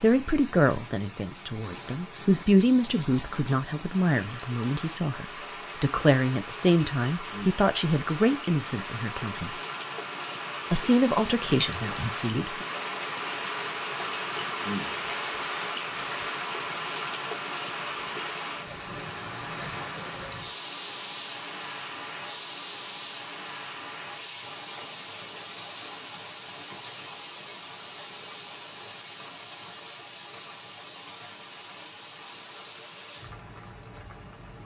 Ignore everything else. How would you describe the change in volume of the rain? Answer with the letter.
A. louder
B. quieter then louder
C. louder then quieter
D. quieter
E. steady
C.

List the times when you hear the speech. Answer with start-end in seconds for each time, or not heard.
0.0-9.6, 10.7-12.7.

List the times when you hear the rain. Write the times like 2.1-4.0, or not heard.
0.0-34.6.